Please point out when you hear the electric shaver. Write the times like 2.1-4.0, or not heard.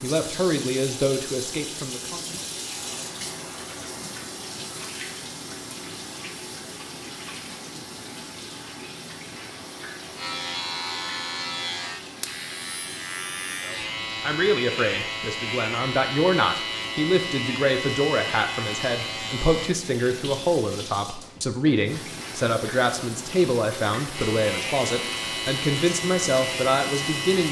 10.2-19.8, 24.1-27.4.